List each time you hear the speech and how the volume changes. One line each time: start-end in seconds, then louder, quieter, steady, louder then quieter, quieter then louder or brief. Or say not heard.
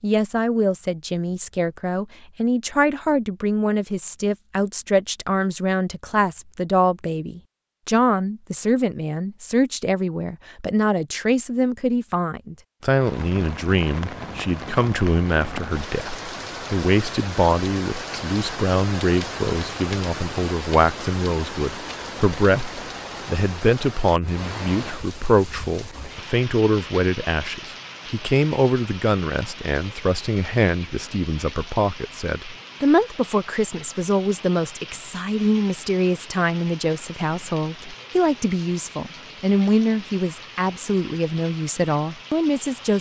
0.0-42.9 steady.